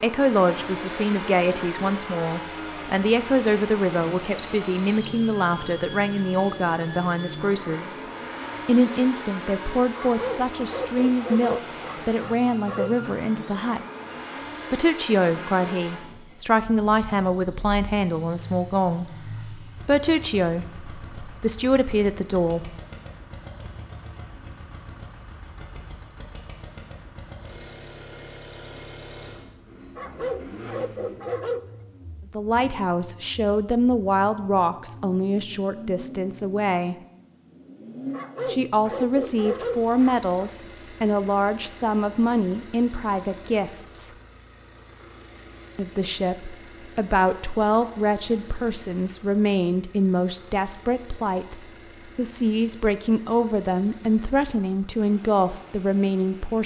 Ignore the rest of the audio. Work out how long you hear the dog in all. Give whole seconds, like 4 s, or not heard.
7 s.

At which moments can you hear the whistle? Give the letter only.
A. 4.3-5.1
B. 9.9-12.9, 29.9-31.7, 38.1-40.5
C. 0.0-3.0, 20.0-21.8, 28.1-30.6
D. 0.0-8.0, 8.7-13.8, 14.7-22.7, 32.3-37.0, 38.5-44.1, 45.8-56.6
A.